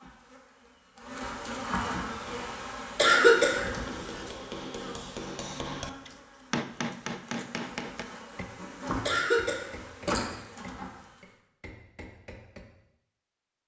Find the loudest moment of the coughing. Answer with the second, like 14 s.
3 s.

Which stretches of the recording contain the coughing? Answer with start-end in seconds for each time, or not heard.
3.0-4.1, 9.1-9.7.